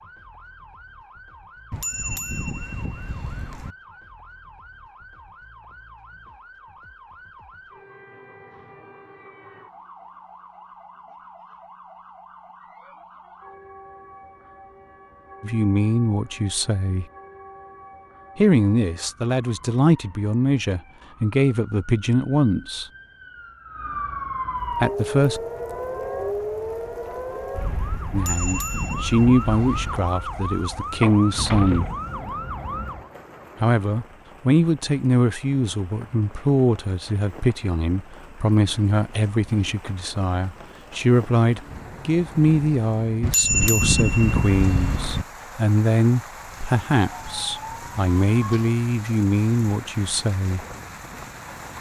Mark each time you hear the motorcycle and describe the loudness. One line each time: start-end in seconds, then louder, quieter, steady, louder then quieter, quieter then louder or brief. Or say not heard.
not heard.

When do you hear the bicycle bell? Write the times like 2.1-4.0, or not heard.
1.7-3.8, 28.1-30.0, 43.2-45.2.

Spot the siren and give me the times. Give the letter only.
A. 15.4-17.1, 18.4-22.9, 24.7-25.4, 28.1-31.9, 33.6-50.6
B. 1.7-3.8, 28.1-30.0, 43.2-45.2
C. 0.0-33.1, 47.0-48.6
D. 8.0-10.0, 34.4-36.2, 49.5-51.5
C.